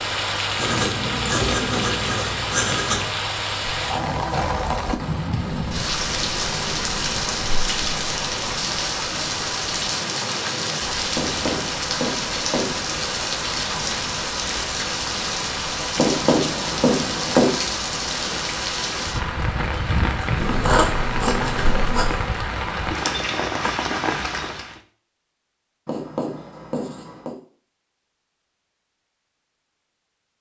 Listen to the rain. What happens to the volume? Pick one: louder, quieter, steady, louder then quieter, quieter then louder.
steady.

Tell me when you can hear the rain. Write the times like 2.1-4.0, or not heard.
0.0-24.8.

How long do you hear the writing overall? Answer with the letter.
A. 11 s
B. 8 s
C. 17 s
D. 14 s
A.